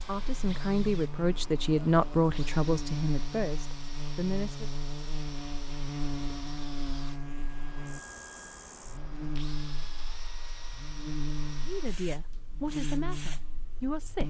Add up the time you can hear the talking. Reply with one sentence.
The talking can be heard for 7 seconds in total.